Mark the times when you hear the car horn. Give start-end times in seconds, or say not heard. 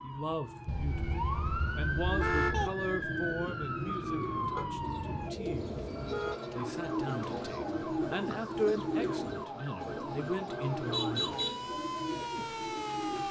0.7-2.7, 4.5-6.3, 10.9-11.6.